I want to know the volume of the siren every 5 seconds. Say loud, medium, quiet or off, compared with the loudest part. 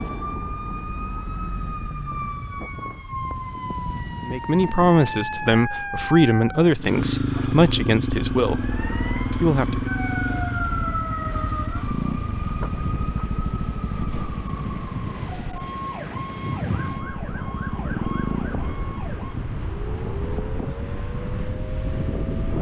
loud, loud, loud, medium, medium.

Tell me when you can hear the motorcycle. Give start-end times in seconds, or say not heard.
6.8-18.6.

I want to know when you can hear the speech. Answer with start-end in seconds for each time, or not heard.
4.2-9.9.